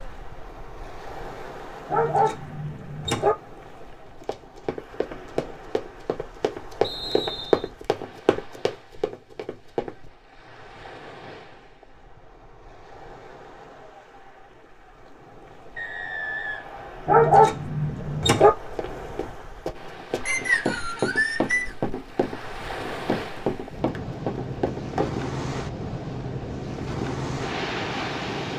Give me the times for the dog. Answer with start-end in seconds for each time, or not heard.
1.9-3.4, 17.1-18.5.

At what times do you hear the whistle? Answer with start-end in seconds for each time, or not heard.
6.8-7.7, 15.8-17.1, 20.2-21.7.